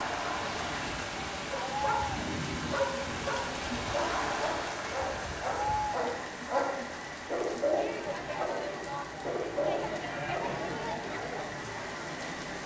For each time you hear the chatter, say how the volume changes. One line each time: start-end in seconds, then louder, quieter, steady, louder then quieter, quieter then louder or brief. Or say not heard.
0.0-12.6 steady.